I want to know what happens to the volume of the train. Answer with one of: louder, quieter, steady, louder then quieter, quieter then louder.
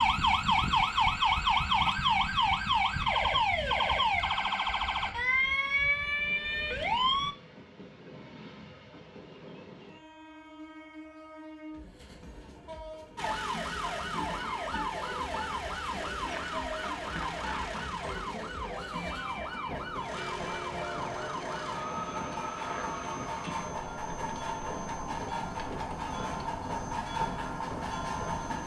louder.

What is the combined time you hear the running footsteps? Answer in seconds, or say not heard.
not heard.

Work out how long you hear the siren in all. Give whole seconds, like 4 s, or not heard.
23 s.